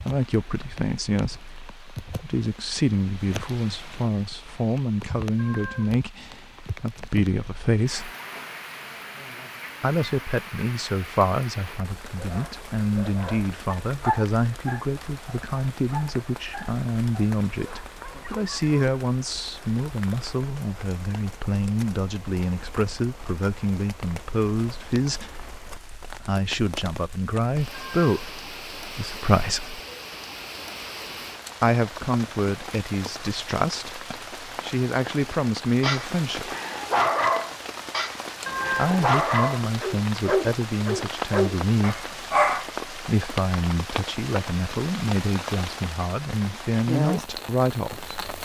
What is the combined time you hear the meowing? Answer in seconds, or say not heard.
2 s.